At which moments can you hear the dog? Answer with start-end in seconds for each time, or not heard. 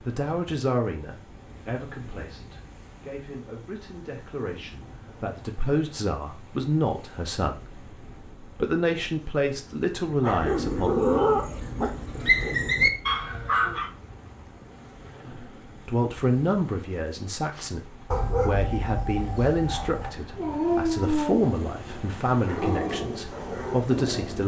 10.2-13.9, 17.6-24.4.